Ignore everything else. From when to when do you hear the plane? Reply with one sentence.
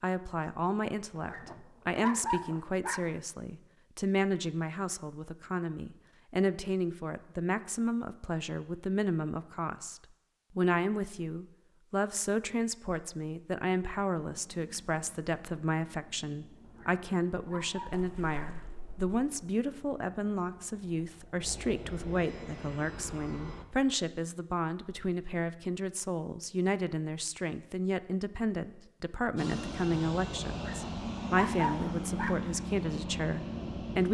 The plane can be heard from 14.2 to 23.6 s and from 29.4 to 34.1 s.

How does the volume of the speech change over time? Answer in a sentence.
The volume of the speech stays about the same.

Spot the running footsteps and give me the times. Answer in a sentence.
The running footsteps can't be heard in this clip.